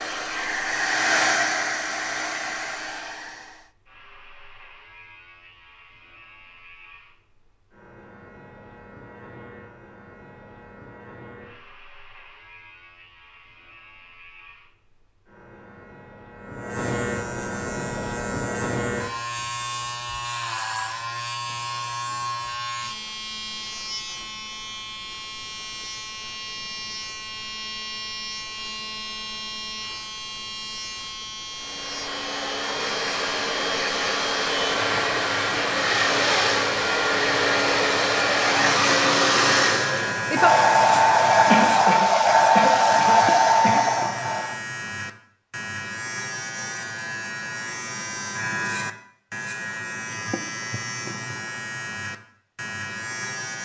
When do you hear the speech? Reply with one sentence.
You can't hear the speech here.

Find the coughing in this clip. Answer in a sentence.
The coughing can be heard from 41.5 to 44.0 s.